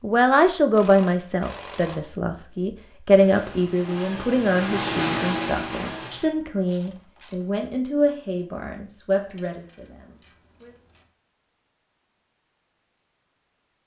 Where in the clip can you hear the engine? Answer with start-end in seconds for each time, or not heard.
3.1-6.3.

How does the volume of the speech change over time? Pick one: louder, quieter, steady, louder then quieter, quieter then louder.
quieter.